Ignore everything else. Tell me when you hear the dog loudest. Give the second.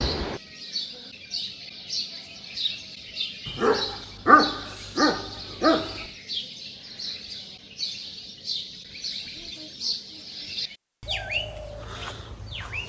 4 s.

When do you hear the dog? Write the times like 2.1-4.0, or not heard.
3.5-6.0.